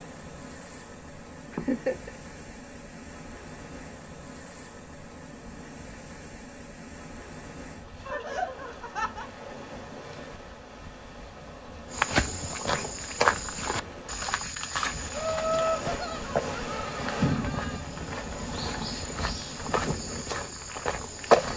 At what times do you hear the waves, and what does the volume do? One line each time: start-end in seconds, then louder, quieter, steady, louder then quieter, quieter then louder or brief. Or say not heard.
0.0-21.5 louder.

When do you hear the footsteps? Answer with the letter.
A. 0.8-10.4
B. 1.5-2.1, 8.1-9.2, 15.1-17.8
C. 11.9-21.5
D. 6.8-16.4
C.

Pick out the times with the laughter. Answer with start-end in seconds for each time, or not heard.
1.5-2.1, 8.1-9.2, 15.1-17.8.